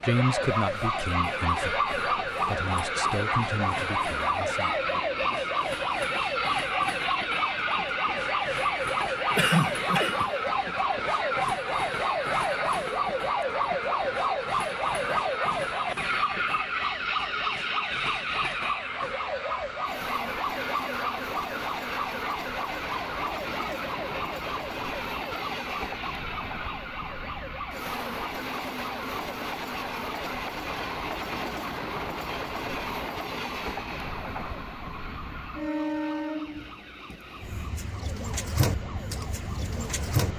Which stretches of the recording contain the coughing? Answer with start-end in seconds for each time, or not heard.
9.3-10.3.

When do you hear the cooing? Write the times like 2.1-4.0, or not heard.
37.8-40.3.